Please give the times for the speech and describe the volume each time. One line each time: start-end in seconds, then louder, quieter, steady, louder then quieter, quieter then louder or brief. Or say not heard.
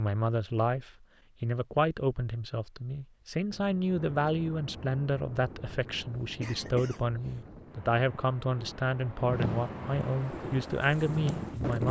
0.0-11.8 steady.